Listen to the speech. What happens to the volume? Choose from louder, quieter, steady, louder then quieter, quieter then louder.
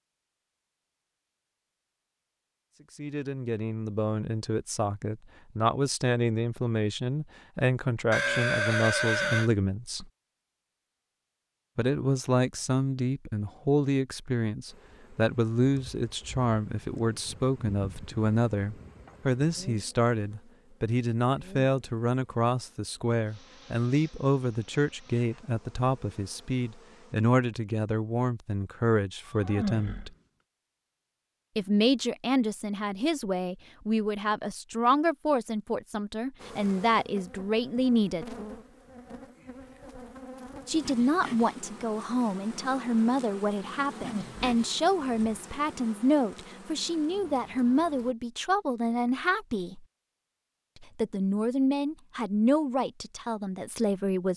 steady.